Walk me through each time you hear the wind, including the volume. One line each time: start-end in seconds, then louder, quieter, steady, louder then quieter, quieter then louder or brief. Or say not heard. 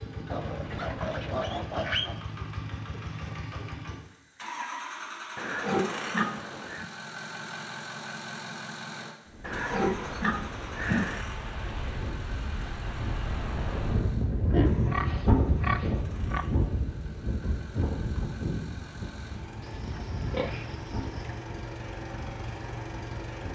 9.2-23.5 louder then quieter.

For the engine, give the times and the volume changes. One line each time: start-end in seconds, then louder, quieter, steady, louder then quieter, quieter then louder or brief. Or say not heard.
0.0-23.5 quieter then louder.